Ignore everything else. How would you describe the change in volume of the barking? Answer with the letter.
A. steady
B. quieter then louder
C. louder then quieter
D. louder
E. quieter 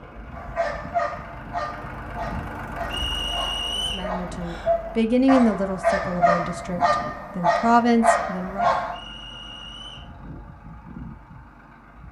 B.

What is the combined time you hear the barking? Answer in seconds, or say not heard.
9 s.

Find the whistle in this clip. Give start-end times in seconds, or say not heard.
2.9-4.1, 8.9-10.1.